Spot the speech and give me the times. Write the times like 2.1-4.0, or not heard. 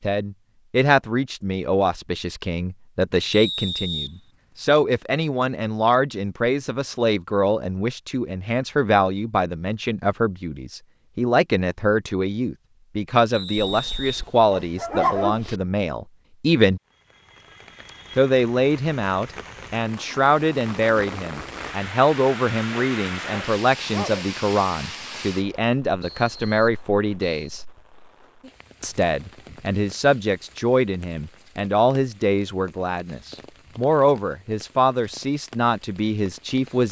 0.0-16.8, 18.1-27.6, 28.8-36.8.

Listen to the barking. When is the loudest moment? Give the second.
15 s.